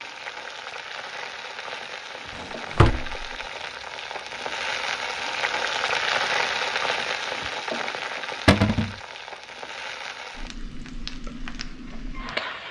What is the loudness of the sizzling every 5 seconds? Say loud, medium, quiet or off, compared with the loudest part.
medium, loud, medium.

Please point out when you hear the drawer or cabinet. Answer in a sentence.
You can hear the drawer or cabinet from 2.4 to 3.3 s and from 8.4 to 8.9 s.